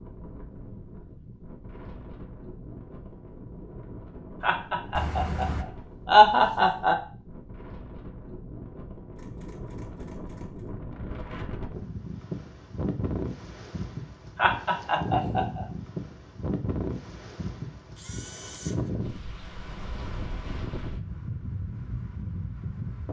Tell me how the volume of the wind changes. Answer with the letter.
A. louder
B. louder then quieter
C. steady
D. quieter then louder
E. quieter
A.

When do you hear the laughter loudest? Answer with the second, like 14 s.
6 s.